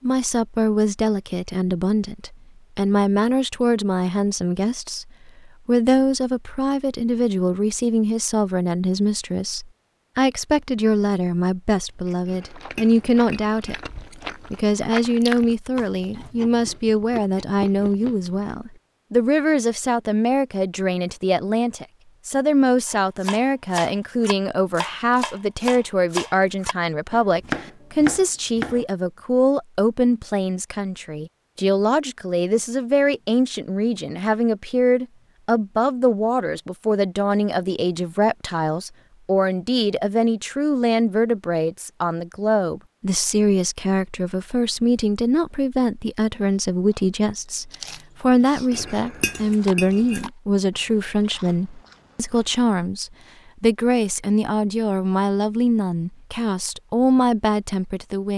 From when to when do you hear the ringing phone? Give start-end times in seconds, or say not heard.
not heard.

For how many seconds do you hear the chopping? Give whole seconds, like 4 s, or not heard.
6 s.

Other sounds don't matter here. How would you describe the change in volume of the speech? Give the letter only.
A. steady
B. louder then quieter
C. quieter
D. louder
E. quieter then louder
A.